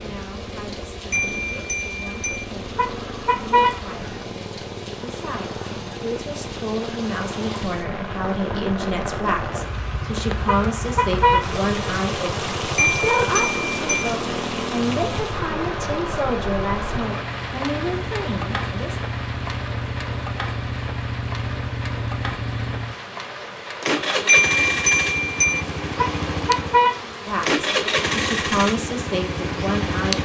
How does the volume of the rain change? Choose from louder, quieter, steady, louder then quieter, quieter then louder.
louder then quieter.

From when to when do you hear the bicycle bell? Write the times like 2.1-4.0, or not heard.
1.1-2.5, 12.8-14.1, 24.2-25.6.